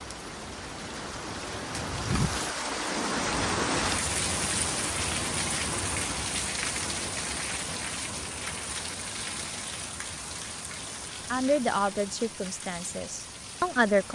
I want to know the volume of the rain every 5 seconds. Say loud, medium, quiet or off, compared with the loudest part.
loud, loud, medium.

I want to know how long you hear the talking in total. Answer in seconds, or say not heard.
3 s.